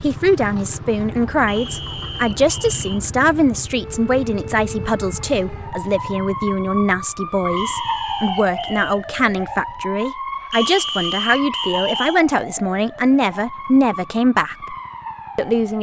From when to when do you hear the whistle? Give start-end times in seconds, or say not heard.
1.4-3.0, 7.5-9.0, 10.5-12.2.